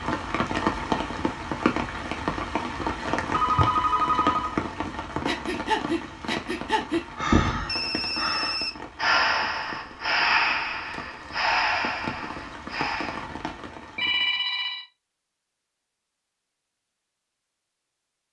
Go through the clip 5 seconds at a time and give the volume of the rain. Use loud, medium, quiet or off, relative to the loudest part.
loud, medium, medium, off.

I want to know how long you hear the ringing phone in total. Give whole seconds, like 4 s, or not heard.
3 s.